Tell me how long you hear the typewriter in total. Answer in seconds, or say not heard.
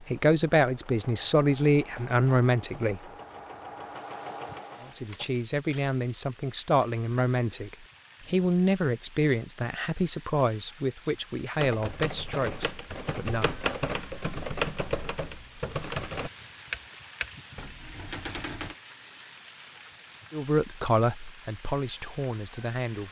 7 s.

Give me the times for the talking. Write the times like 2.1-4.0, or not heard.
0.1-3.0, 4.8-13.6, 20.3-23.0.